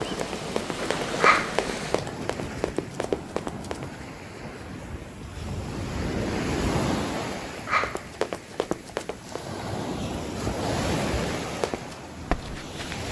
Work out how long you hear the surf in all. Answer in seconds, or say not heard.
13 s.